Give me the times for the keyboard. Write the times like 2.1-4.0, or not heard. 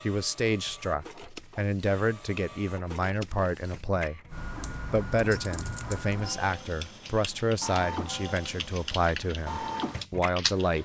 4.3-10.8.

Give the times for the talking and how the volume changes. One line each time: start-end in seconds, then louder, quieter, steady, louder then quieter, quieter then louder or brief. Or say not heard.
0.0-10.8 steady.